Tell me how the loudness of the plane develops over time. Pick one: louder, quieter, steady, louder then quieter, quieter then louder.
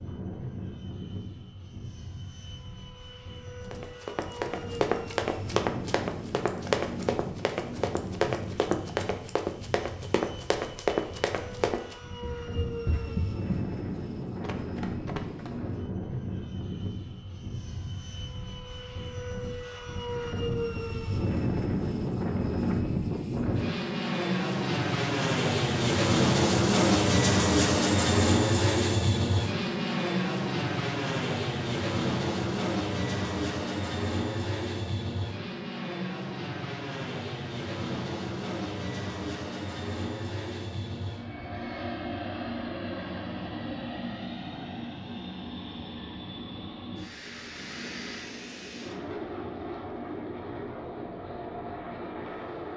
louder then quieter.